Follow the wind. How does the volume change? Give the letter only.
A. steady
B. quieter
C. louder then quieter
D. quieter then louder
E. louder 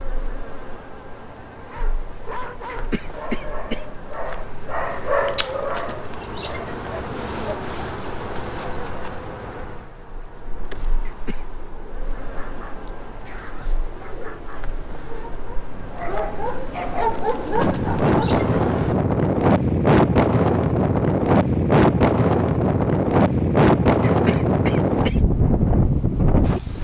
E.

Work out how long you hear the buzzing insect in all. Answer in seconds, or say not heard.
19 s.